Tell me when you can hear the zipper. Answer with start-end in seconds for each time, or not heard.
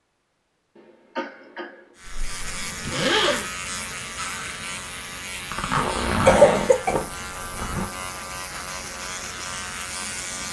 2.0-3.5, 5.5-7.9.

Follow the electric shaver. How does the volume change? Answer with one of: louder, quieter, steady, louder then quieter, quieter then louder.
steady.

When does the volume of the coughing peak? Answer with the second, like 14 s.
6 s.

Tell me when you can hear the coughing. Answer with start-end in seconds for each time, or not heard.
0.8-1.8, 5.7-7.0.